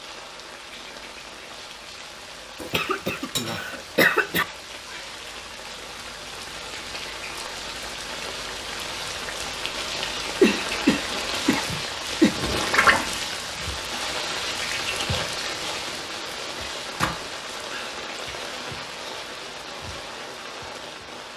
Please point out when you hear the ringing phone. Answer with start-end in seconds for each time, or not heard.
not heard.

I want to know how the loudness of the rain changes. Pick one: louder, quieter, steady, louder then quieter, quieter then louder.
louder then quieter.